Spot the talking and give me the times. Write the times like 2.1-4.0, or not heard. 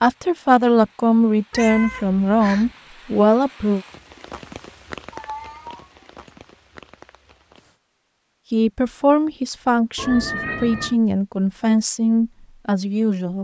0.0-3.9, 8.5-13.3.